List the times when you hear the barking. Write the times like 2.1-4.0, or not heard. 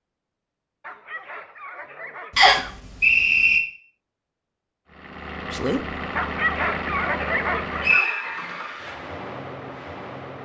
0.8-2.8, 6.2-8.2.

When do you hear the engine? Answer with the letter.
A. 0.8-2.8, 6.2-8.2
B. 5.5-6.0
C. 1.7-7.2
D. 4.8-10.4
D.